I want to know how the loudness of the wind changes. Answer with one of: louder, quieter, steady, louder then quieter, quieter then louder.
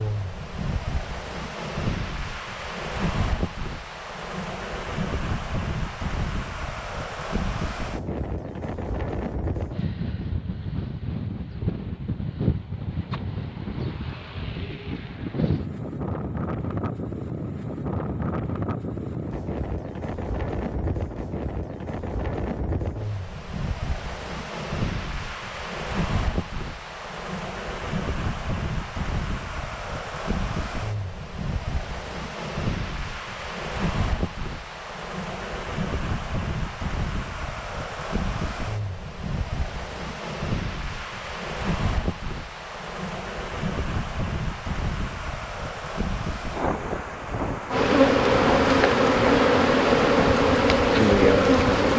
steady.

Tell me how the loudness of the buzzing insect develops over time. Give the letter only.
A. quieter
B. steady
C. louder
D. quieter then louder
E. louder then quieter
B.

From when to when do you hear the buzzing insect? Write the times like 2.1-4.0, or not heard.
47.7-51.9.